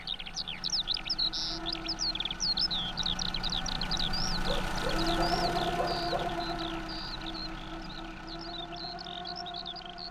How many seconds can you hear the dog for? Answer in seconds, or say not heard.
2 s.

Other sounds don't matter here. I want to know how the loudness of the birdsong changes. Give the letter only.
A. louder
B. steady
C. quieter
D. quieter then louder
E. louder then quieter
C.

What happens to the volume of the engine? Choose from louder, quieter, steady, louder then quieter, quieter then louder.
louder then quieter.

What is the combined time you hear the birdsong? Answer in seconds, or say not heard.
10 s.